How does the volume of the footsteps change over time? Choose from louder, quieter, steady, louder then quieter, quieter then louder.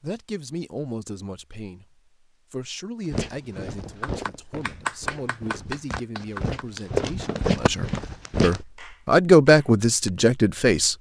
quieter then louder.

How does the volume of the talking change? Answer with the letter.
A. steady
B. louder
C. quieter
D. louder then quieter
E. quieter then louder
B.